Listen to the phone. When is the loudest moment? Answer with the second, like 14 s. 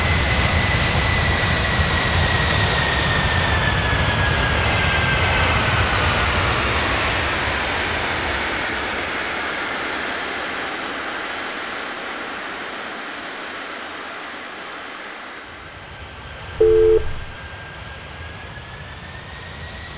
17 s.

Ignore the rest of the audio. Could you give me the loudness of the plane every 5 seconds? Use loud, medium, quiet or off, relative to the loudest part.
loud, loud, medium, quiet.